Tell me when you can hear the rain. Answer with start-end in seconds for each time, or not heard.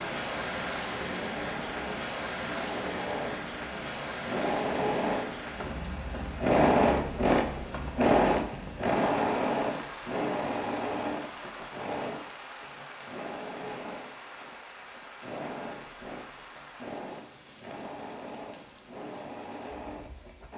0.0-20.5.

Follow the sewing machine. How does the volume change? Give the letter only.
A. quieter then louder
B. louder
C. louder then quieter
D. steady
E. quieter
C.